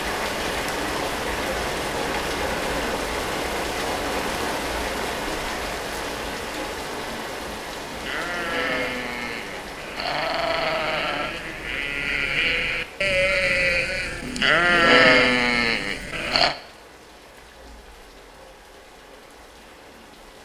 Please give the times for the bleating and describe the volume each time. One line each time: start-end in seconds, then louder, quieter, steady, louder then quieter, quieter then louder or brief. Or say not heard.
7.9-16.6 louder.